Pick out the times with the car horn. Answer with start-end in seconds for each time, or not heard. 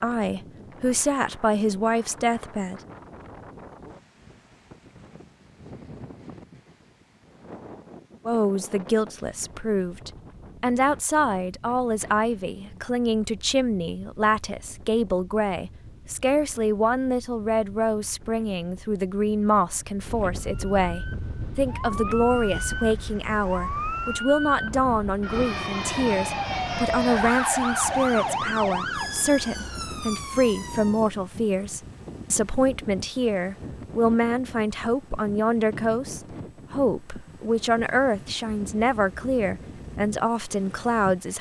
not heard.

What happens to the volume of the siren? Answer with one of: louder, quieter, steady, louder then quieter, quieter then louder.
louder then quieter.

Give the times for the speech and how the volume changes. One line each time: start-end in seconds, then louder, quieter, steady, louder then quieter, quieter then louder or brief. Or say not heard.
0.0-2.8 brief
8.2-41.3 steady.